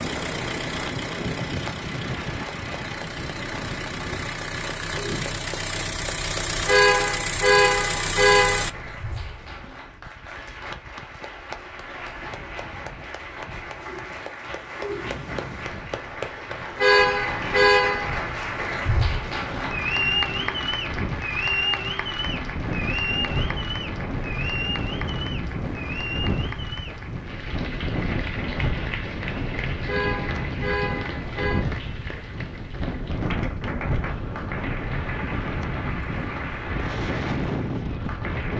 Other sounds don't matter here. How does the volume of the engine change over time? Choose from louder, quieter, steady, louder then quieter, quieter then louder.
louder.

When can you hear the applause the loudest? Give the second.
20 s.